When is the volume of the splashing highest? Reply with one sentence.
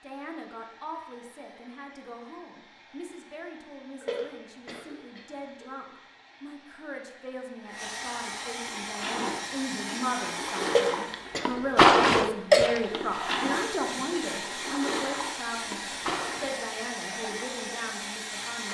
The loudest moment of the splashing is at 12 seconds.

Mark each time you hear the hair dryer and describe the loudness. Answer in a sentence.
You can hear the hair dryer from 0.0 to 18.7 s, getting louder.